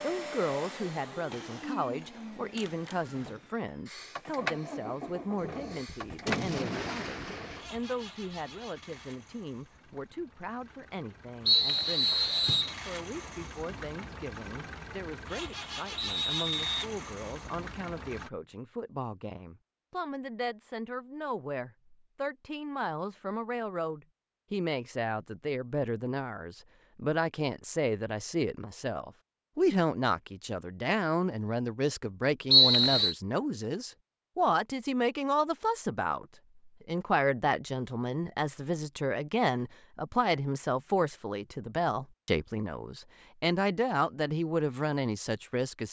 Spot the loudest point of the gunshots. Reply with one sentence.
The volume of the gunshots peaks at 6 seconds.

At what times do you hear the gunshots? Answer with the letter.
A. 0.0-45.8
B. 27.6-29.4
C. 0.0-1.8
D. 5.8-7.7
D.